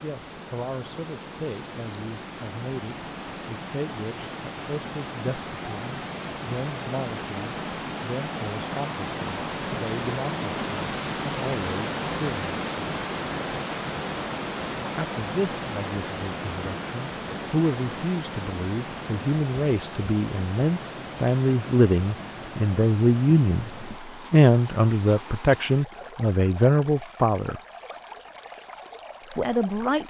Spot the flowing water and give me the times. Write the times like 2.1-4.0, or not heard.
0.0-30.0.